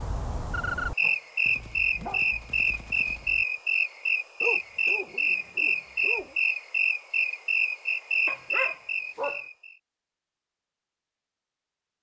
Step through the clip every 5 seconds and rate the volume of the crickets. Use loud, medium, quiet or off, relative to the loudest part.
loud, loud, off.